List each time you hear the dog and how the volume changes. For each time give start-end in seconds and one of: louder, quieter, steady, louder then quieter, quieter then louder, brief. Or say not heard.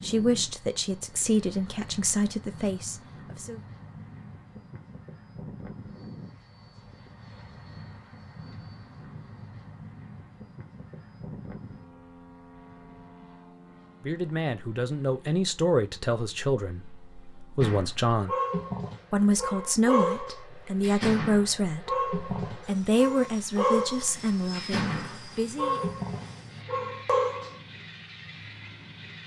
17.6-27.6 steady.